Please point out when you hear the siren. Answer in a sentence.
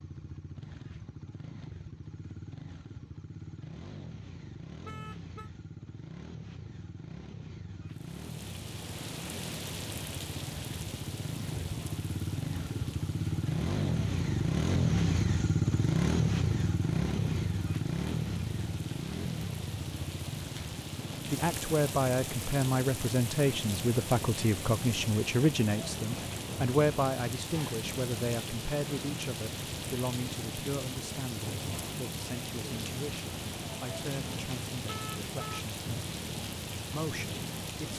The siren can't be heard in this clip.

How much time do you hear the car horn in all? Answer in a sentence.
You can hear the car horn for 2 seconds altogether.